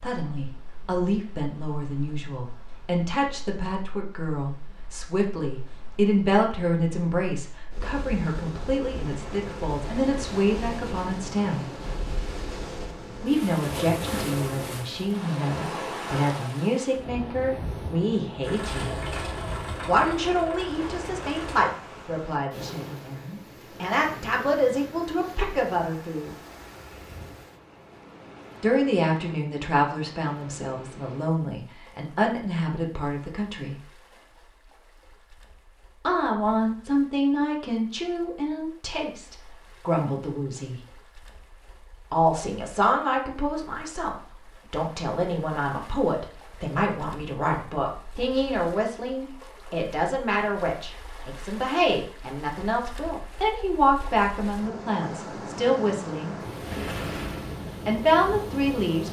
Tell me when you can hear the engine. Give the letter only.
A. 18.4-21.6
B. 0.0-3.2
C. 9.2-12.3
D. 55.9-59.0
A.